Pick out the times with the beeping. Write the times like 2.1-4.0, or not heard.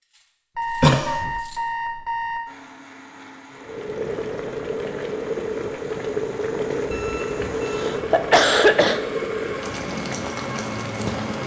0.6-2.4, 6.9-7.9.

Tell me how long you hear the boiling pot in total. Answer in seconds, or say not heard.
8 s.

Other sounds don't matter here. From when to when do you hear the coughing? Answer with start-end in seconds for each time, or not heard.
0.8-1.3, 7.7-9.0.